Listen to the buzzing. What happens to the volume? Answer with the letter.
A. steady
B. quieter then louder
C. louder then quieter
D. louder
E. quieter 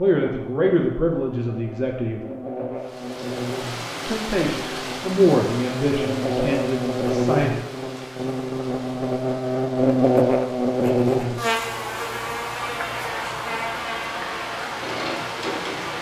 C.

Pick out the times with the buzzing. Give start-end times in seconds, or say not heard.
0.1-15.9.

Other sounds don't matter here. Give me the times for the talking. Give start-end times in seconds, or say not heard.
0.0-2.2, 4.0-7.5.